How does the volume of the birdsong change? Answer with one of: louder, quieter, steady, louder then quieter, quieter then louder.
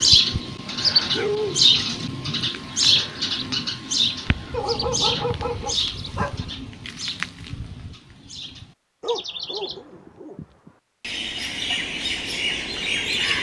quieter then louder.